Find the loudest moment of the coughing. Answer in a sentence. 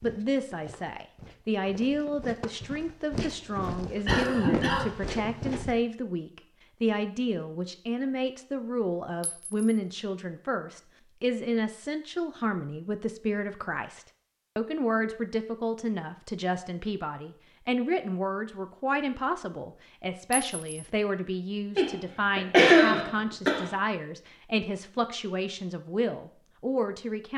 The loudest moment of the coughing is at 23 seconds.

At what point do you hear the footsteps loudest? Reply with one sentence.
The volume of the footsteps peaks at 4 seconds.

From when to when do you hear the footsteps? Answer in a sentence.
The footsteps can be heard from 0.0 to 5.8 s.